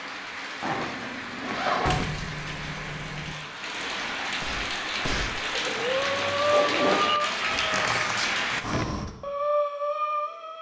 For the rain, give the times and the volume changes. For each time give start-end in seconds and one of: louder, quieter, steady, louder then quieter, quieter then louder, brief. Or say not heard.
0.0-8.7 louder.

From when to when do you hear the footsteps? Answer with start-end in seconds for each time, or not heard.
not heard.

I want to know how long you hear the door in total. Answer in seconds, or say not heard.
3 s.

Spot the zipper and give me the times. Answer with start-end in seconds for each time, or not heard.
0.6-2.0, 5.8-7.1.